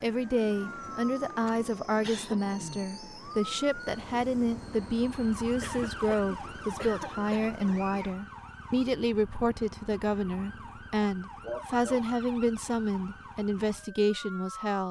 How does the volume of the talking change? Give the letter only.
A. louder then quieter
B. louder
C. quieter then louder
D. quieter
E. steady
E.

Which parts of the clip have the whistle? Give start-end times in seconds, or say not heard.
not heard.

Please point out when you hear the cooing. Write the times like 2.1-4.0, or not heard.
not heard.